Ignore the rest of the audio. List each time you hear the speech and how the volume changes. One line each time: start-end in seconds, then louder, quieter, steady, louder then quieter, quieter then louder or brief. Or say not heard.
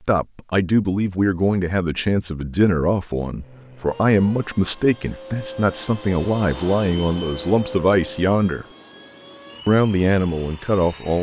0.1-8.7 steady
9.7-11.1 brief.